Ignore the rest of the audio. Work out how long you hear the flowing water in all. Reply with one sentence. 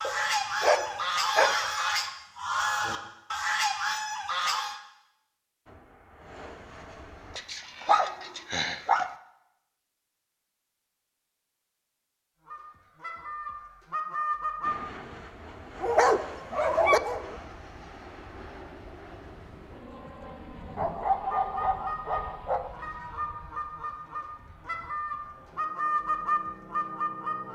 You can't hear the flowing water here.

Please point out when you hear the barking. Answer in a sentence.
You can hear the barking from 0.0 to 1.6 s, from 7.3 to 9.2 s, from 15.8 to 17.4 s and from 20.8 to 22.7 s.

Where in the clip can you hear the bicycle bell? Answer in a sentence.
You can't hear the bicycle bell here.